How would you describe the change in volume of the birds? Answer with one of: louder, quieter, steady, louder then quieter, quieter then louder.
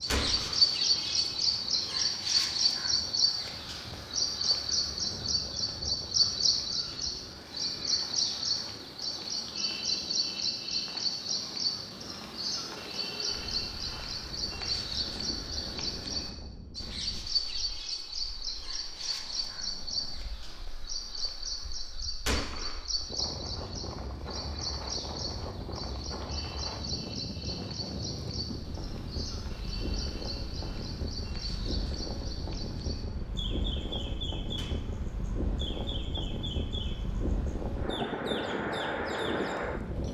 quieter.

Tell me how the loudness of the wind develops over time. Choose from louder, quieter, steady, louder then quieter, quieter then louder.
louder.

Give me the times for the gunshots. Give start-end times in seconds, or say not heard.
0.1-0.7, 22.2-22.9, 34.5-35.0.